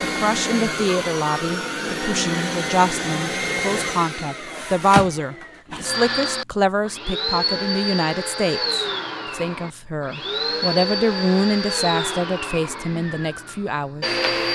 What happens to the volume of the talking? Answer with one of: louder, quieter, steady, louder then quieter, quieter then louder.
steady.